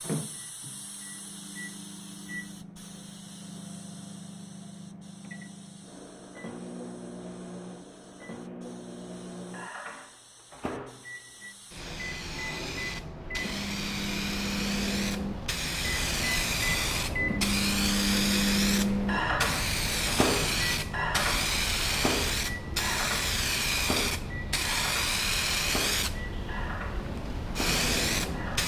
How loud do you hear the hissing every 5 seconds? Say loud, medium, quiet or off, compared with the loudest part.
quiet, quiet, medium, loud, loud, loud.